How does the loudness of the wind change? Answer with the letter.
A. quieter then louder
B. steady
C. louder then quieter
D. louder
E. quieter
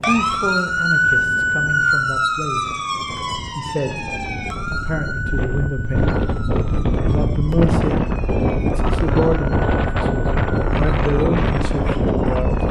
D.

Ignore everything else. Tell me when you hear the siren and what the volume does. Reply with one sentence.
The siren can be heard from 0.0 to 12.6 s, getting quieter.